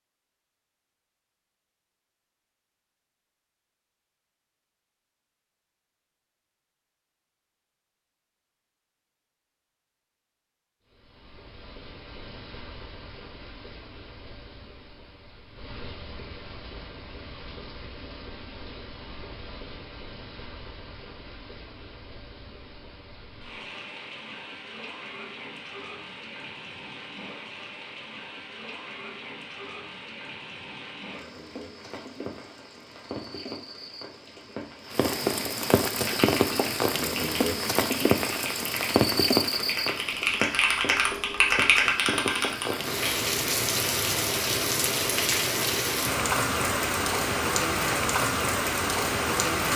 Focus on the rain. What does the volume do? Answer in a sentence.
The loudness of the rain goes up.